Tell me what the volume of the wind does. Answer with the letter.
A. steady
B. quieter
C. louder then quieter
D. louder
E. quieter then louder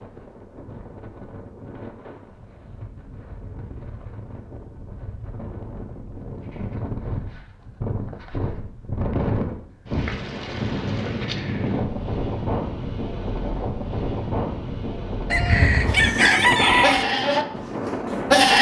D.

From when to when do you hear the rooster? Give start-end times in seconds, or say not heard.
15.3-17.1.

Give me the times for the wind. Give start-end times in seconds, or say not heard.
0.0-18.5.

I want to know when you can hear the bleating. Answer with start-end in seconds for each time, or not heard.
15.8-18.5.